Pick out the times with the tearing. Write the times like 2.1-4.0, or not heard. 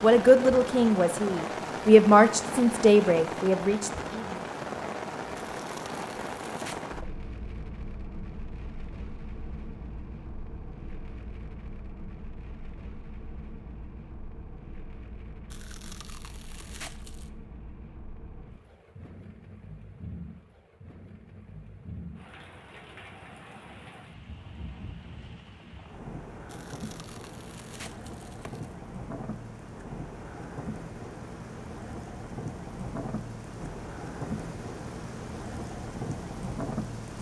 5.3-6.8, 15.5-17.3, 26.4-28.8.